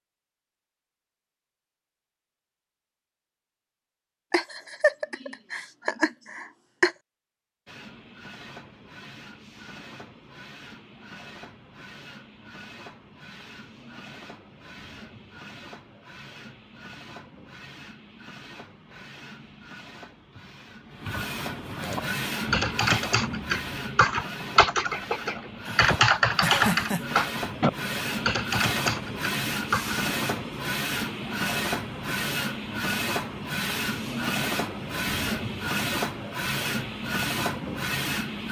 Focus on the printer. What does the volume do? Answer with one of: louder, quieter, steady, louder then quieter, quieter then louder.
louder.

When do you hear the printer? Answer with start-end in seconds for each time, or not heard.
7.7-38.4.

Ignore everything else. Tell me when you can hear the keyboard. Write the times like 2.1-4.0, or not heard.
21.8-29.9.